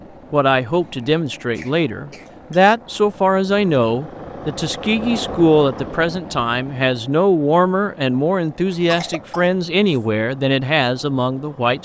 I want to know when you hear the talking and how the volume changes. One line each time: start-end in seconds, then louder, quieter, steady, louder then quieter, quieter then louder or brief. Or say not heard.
0.3-11.8 steady.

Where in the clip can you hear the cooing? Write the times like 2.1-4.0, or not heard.
not heard.